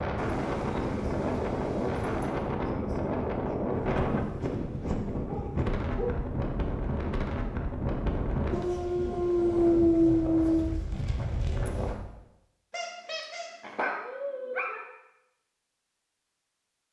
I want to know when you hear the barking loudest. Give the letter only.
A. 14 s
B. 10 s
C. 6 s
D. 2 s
B.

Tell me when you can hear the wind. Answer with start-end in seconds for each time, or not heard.
0.0-12.0.